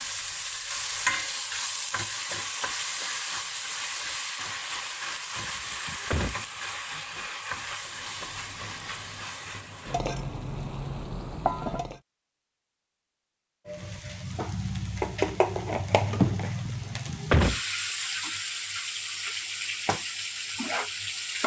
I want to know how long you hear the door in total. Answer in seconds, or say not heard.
2 s.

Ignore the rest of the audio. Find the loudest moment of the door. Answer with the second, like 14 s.
17 s.